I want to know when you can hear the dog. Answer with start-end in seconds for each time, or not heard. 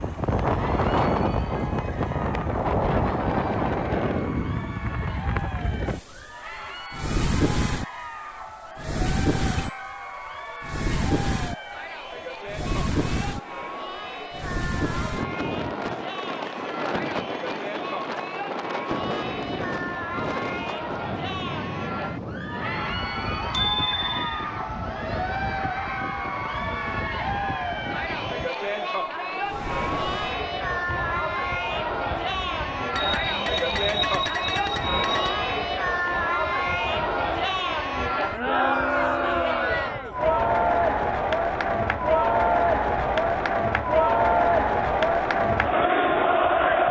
not heard.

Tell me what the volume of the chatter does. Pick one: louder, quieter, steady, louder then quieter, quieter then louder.
louder.